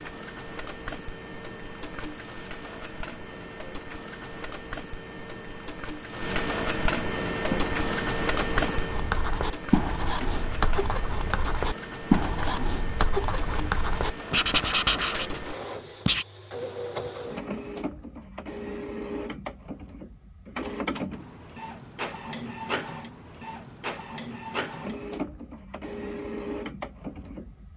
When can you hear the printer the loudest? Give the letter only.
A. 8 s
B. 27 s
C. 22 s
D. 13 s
A.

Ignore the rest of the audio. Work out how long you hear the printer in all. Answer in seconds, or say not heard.
28 s.